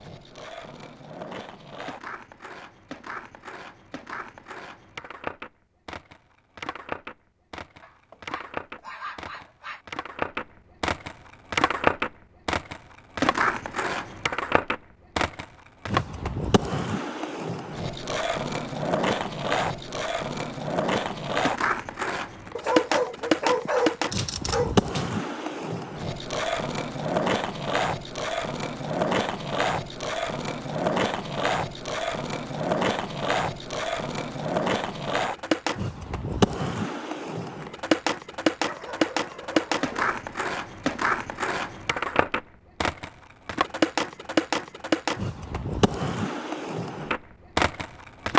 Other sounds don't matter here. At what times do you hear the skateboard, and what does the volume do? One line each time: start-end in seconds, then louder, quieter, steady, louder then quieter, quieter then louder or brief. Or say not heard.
0.0-48.3 louder.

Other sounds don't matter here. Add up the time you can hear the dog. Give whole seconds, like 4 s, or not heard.
6 s.